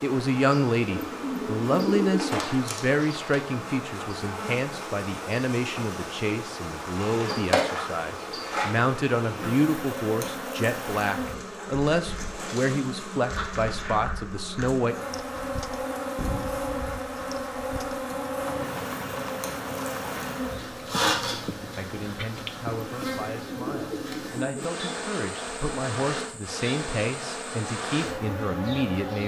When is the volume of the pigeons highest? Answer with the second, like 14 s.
2 s.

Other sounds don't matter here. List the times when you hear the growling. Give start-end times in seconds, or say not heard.
not heard.